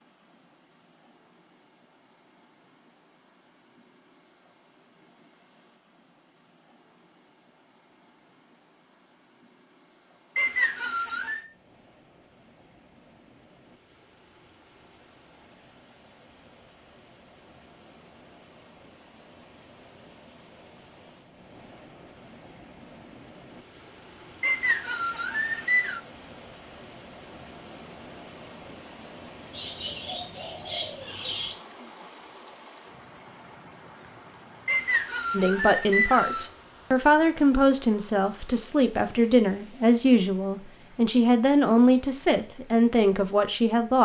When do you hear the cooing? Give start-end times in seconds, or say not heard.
29.5-31.6.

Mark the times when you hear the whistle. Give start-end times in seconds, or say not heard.
10.3-11.4, 24.4-26.0, 34.6-36.5.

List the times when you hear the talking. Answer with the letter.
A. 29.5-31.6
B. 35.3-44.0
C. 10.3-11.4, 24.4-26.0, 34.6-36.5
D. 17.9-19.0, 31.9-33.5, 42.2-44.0
B.